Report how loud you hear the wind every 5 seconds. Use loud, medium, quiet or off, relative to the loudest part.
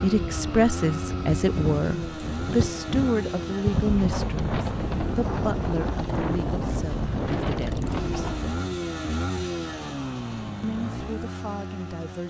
loud, loud, off.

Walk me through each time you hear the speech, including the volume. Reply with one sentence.
You can hear the speech from 0.0 to 8.3 s, getting quieter; and briefly from 10.6 to 12.2 s.